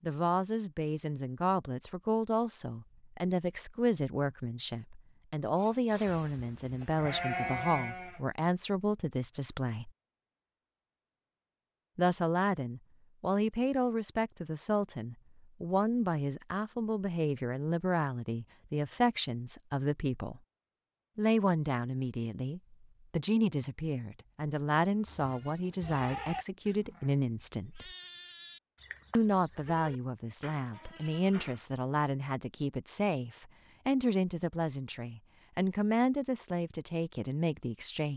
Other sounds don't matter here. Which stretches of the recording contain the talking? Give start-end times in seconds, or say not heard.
0.0-9.9, 11.9-20.4, 21.1-27.9, 29.1-38.1.